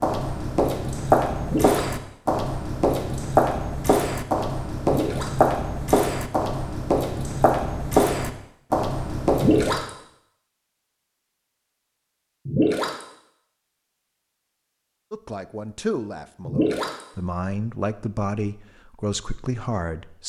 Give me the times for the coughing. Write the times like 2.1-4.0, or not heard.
not heard.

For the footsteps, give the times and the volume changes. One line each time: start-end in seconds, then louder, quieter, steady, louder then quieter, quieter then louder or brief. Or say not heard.
0.0-9.8 steady.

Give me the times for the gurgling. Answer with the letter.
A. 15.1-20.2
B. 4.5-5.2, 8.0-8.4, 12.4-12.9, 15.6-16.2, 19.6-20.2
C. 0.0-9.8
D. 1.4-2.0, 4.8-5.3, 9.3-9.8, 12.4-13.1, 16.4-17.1
D.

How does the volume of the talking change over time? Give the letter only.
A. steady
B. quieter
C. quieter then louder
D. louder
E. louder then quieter
C.